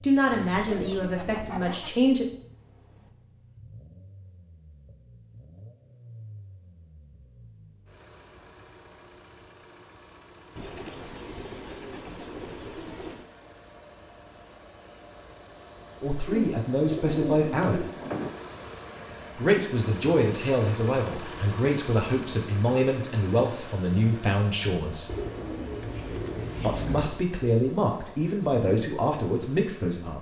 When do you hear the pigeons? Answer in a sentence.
You can hear the pigeons from 0.3 to 1.9 s, from 10.6 to 13.2 s, from 16.2 to 18.3 s and from 25.1 to 27.1 s.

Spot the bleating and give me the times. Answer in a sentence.
The bleating can't be heard in this clip.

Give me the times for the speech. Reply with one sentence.
You can hear the speech from 0.0 to 2.2 s, from 16.0 to 17.9 s, from 19.4 to 25.1 s and from 26.6 to 30.1 s.